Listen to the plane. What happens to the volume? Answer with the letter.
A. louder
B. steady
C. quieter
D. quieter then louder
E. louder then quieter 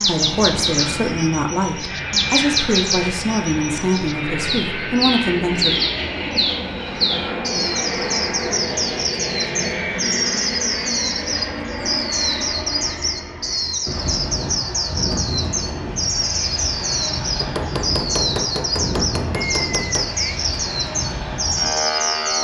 B.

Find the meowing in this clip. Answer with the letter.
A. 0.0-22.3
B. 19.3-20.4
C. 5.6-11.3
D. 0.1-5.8
B.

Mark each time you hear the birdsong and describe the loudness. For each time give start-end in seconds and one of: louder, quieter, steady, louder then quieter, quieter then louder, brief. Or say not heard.
0.0-22.3 steady.